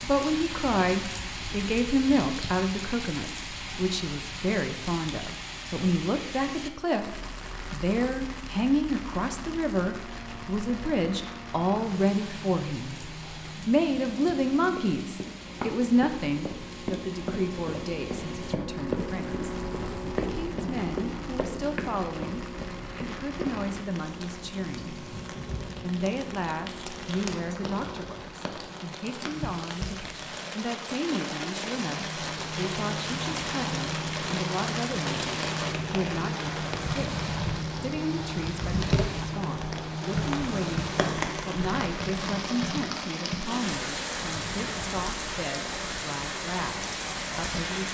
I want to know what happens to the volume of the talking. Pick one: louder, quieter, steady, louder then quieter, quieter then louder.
quieter.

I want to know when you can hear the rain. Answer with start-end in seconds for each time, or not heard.
0.0-47.8.